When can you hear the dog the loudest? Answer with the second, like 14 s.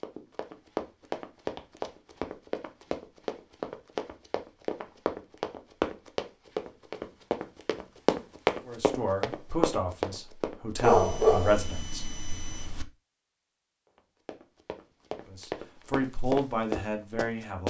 11 s.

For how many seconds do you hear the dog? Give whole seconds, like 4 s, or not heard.
2 s.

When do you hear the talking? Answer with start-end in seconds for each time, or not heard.
8.7-12.1, 15.2-17.6.